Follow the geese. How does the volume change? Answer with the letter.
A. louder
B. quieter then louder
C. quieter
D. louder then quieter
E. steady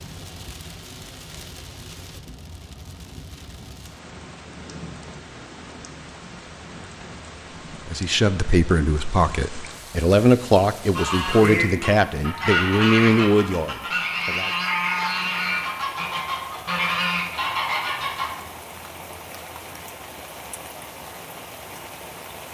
E.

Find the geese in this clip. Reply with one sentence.
The geese can be heard from 10.9 to 18.4 s.